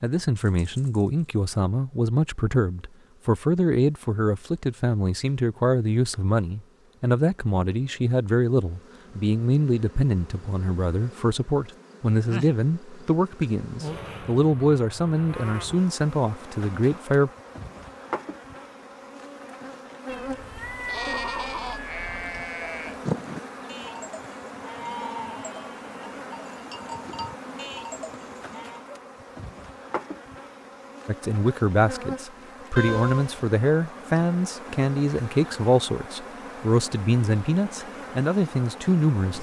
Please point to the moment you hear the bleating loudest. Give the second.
23 s.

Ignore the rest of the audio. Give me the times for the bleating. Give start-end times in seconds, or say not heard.
20.2-28.8.